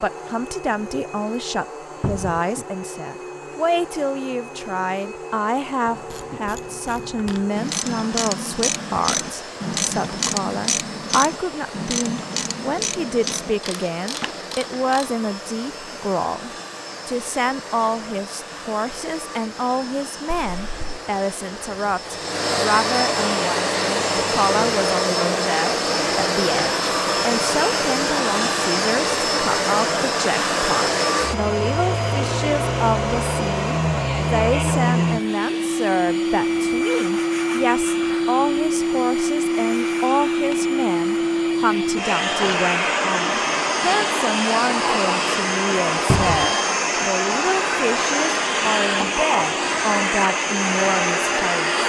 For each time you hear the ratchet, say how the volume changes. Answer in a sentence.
You can hear the ratchet from 5.8 to 15.2 s, getting louder then quieter.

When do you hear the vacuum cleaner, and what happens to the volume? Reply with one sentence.
You can hear the vacuum cleaner from 0.0 to 51.8 s, getting louder.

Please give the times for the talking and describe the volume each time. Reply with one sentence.
The talking can be heard from 0.0 to 51.8 s, at a steady volume.